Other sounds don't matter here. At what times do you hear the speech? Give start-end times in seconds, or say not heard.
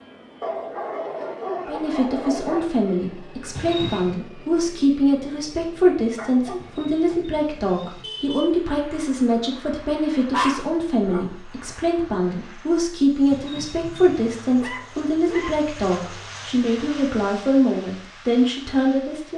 1.6-19.3.